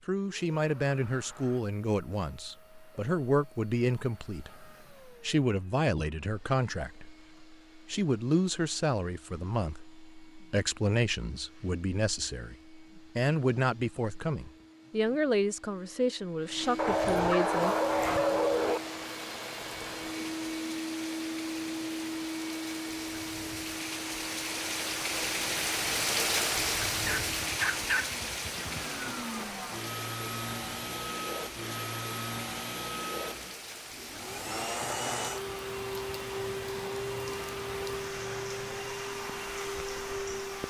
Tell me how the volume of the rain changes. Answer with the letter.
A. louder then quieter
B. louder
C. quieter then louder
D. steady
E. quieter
A.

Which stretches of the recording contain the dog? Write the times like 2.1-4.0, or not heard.
16.8-18.8, 27.1-28.8.